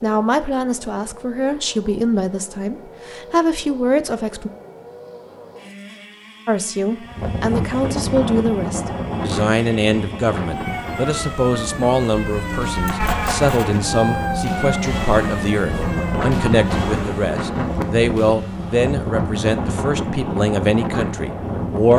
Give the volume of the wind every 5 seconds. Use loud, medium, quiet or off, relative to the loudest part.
off, loud, medium, loud, loud.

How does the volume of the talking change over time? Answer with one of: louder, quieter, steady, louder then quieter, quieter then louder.
steady.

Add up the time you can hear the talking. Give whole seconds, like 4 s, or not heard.
20 s.